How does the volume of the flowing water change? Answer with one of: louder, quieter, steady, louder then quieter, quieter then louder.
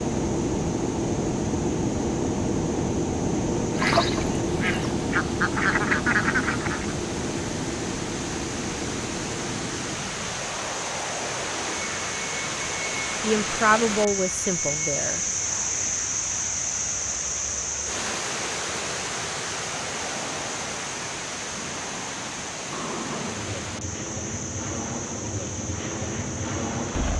louder then quieter.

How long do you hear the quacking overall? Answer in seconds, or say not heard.
3 s.